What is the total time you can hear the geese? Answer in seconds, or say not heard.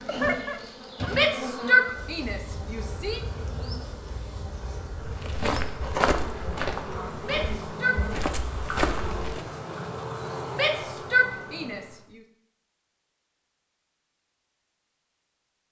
2 s.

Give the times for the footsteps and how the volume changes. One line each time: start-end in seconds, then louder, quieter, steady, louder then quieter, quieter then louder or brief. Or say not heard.
5.0-9.4 quieter then louder.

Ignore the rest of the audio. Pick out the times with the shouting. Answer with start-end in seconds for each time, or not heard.
1.1-3.2, 7.2-8.1, 10.5-11.9.